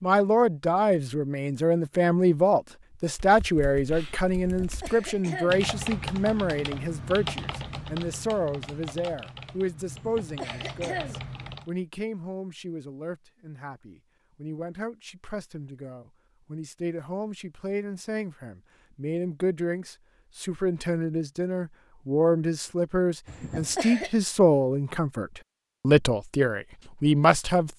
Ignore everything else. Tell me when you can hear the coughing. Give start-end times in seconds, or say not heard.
4.3-5.7, 9.9-11.2, 23.2-24.1.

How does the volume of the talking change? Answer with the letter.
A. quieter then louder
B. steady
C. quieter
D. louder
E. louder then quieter
A.